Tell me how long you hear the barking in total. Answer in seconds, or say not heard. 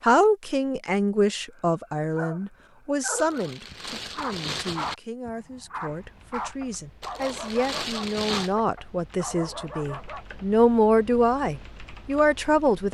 9 s.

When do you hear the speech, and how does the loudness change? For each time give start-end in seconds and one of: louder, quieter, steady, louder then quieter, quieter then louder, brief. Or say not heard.
0.0-12.9 quieter then louder.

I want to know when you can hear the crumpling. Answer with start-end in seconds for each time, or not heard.
3.1-5.0, 7.0-8.5.